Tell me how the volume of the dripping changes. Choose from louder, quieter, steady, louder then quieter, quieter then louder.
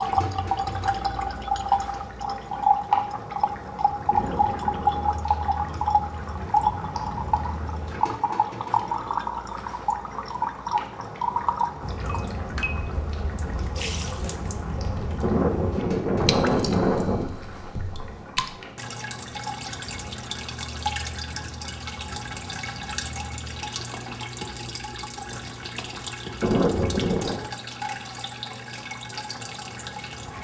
quieter.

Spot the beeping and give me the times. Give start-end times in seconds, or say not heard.
4.1-5.1, 15.2-17.2, 26.4-27.4.